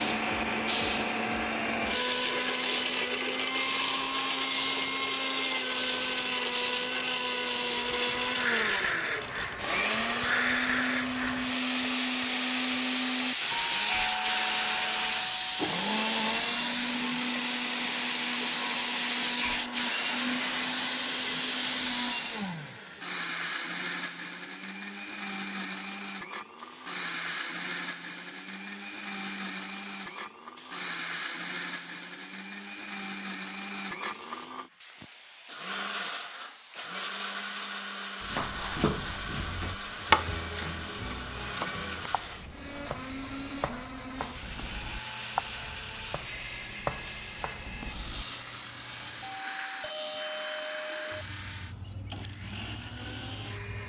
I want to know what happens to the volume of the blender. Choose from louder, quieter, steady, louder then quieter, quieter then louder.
quieter.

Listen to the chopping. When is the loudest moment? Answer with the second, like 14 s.
40 s.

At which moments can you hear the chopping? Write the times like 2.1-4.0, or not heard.
38.2-48.2.